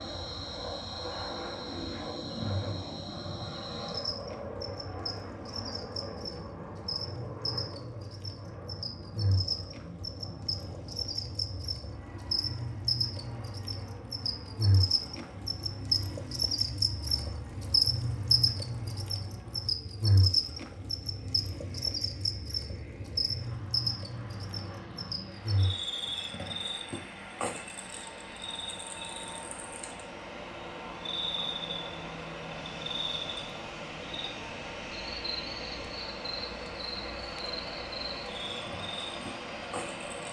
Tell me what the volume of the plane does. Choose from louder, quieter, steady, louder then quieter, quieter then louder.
quieter then louder.